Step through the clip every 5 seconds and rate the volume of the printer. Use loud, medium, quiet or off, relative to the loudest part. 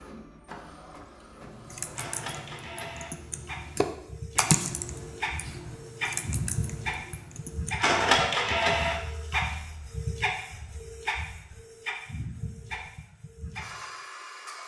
quiet, loud, medium.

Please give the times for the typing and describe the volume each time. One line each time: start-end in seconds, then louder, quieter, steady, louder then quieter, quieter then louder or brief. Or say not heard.
1.4-7.8 louder then quieter.